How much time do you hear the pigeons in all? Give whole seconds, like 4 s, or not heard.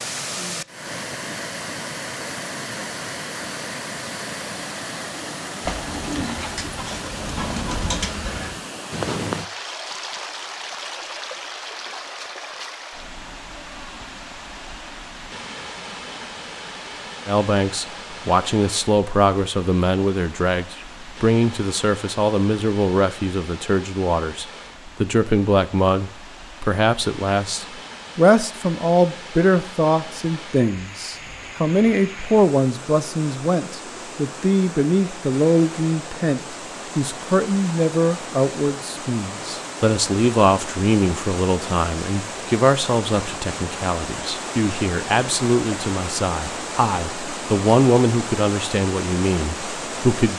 3 s.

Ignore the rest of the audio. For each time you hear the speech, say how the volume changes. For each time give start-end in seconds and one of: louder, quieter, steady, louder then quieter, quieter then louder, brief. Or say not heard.
17.2-50.3 steady.